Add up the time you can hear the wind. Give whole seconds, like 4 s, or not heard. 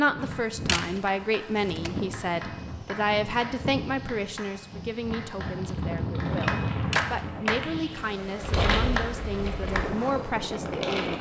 11 s.